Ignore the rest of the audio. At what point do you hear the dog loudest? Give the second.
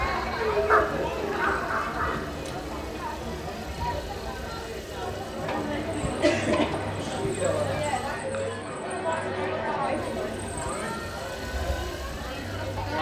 1 s.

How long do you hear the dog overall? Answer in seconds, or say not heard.
2 s.